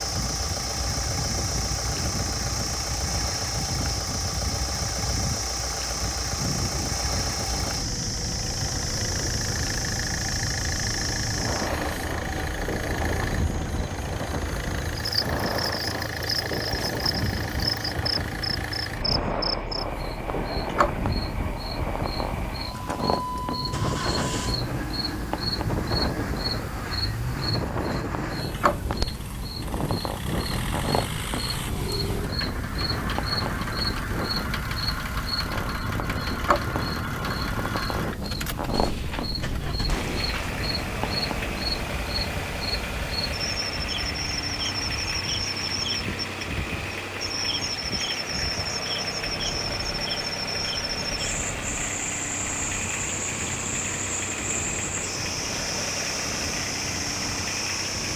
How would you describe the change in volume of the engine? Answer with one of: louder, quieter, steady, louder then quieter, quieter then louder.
steady.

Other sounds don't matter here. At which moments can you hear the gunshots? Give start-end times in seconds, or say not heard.
38.7-40.6.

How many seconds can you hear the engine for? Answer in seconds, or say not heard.
58 s.